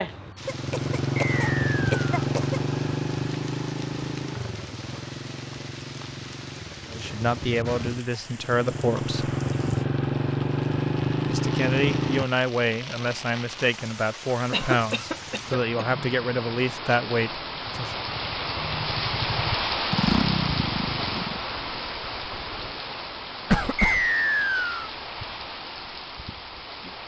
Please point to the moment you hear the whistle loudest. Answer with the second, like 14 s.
24 s.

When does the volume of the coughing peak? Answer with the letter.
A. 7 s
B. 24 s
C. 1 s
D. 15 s
B.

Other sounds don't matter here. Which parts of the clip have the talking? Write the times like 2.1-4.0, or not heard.
6.9-9.3, 11.2-17.9.